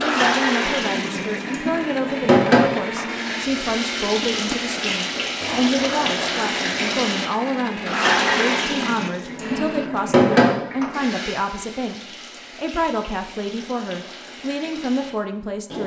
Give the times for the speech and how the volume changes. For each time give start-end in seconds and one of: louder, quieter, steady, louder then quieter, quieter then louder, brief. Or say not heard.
0.0-15.8 steady.